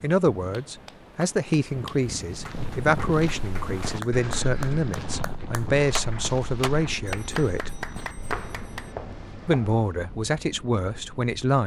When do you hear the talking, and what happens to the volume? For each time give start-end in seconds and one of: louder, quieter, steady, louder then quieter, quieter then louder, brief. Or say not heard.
0.0-7.8 steady
9.4-11.6 brief.